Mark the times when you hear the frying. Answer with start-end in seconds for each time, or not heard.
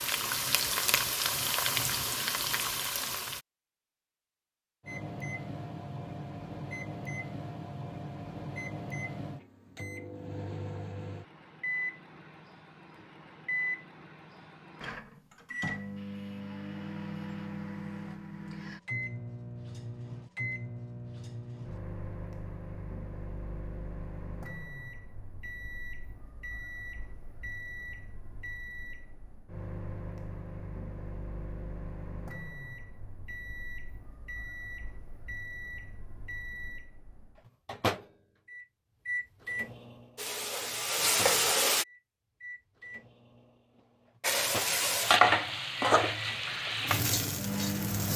0.0-3.4, 40.1-41.9, 44.2-48.1.